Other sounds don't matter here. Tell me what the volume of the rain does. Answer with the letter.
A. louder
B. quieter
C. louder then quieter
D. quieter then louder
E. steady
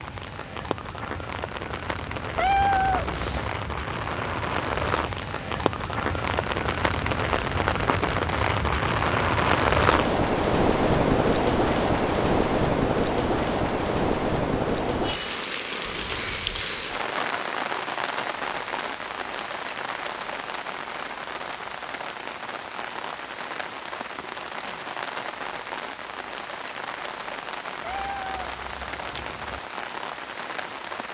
C.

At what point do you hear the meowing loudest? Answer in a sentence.
The loudest moment of the meowing is at 3 seconds.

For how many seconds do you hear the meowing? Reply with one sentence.
The meowing can be heard for 3 seconds in total.